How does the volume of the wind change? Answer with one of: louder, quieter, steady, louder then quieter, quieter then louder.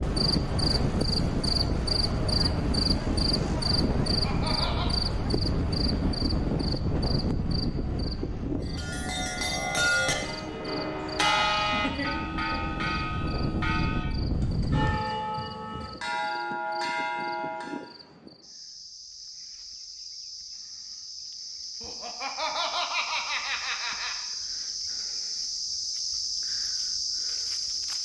quieter then louder.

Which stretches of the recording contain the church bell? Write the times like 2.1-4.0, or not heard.
8.6-17.9.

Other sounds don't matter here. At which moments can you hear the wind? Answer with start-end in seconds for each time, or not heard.
0.0-15.0.